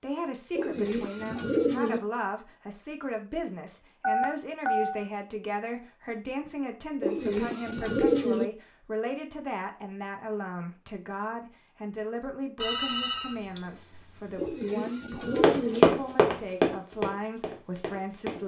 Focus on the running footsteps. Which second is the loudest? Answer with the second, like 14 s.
16 s.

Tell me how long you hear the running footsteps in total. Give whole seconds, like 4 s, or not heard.
3 s.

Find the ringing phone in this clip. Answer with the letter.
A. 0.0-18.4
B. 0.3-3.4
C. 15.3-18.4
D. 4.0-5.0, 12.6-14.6
D.